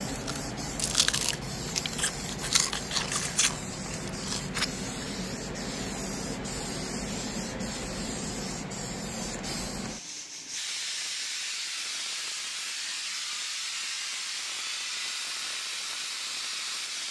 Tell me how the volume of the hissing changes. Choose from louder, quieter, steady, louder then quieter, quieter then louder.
steady.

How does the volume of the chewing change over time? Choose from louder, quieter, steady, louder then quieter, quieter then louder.
quieter.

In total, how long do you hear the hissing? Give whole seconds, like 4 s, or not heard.
17 s.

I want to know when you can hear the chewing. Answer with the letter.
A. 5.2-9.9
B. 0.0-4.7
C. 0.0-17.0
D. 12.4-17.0
B.